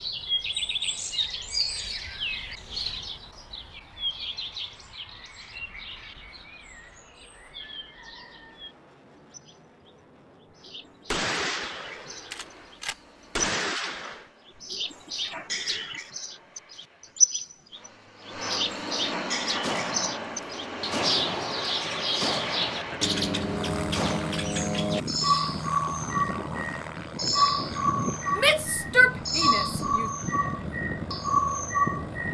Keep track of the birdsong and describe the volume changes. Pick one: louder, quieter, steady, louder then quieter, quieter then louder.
quieter then louder.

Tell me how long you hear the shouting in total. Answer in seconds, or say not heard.
2 s.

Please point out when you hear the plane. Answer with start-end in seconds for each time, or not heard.
0.0-32.2.